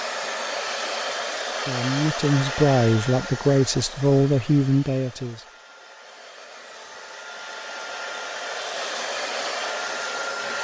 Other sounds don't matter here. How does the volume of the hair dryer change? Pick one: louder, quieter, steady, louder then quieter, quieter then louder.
quieter then louder.